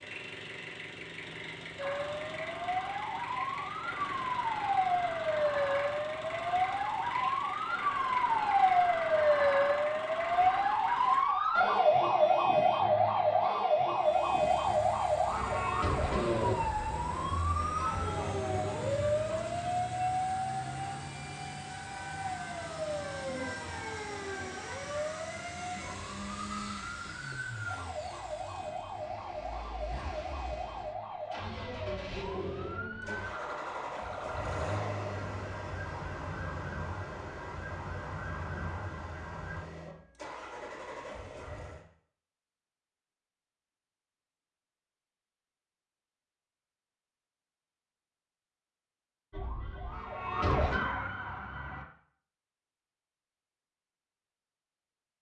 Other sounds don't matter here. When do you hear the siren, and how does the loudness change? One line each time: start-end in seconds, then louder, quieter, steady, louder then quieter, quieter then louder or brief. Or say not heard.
1.8-39.6 quieter
49.3-51.9 brief.